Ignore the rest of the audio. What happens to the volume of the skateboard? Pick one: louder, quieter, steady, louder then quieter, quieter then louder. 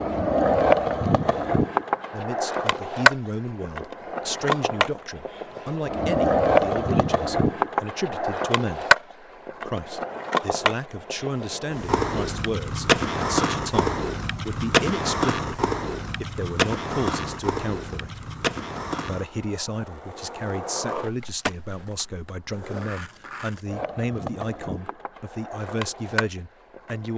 quieter.